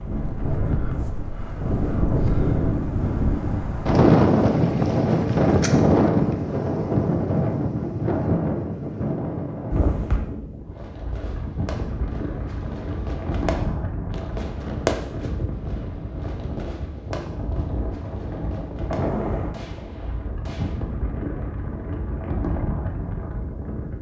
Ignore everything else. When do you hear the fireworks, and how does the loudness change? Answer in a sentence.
You can hear the fireworks from 10.7 to 20.8 s, getting louder then quieter.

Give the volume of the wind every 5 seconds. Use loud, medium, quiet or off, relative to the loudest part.
loud, loud, medium, medium, medium.